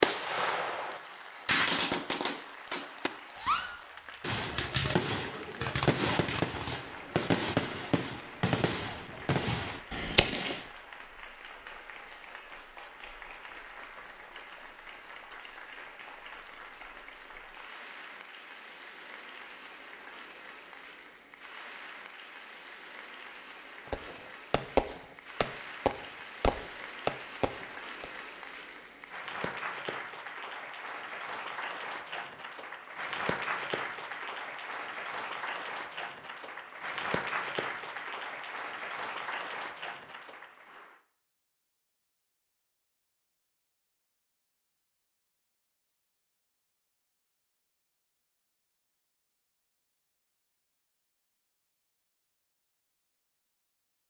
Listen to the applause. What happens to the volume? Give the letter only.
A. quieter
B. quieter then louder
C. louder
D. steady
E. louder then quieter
C.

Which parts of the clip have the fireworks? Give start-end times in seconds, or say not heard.
0.0-10.7, 23.9-28.1.